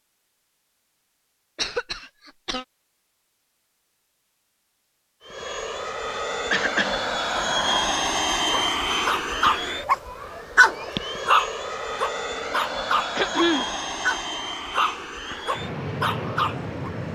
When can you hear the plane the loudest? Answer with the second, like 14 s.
8 s.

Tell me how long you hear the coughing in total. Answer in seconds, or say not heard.
2 s.